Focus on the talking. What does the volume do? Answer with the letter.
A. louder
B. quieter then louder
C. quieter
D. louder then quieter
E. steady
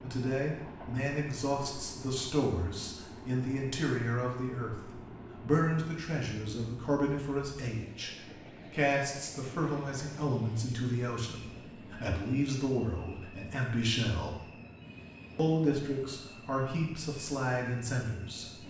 E.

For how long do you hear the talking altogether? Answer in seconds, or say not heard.
18 s.